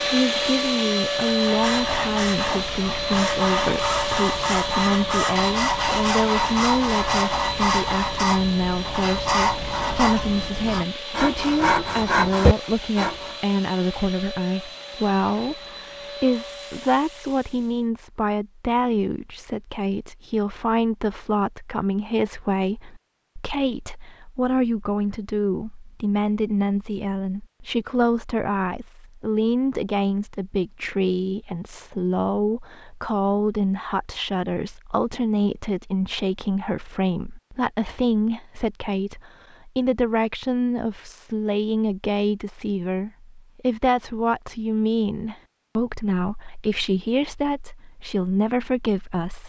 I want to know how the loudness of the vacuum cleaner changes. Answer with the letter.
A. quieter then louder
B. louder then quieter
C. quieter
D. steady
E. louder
C.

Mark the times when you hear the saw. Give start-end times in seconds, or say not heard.
1.1-13.3.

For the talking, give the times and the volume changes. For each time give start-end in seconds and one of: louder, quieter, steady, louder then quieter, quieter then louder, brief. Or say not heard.
0.0-49.4 steady.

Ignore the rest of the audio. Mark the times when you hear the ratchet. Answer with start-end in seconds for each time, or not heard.
not heard.